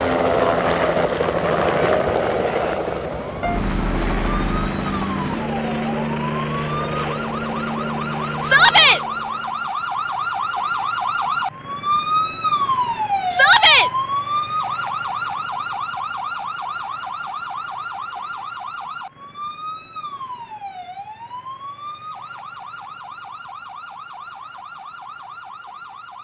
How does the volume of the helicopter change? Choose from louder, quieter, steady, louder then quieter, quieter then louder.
quieter.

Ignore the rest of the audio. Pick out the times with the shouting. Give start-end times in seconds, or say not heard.
8.4-9.0, 13.3-13.9.